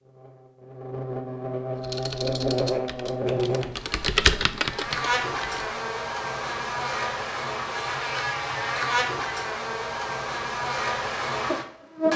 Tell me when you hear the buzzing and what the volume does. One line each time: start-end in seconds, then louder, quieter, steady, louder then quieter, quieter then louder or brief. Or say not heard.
0.0-12.1 steady.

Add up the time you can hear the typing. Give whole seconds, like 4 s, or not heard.
4 s.